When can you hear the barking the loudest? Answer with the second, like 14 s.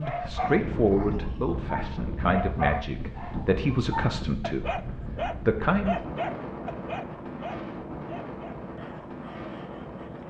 3 s.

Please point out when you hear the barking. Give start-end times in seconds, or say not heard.
0.0-10.2.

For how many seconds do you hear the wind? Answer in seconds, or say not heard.
10 s.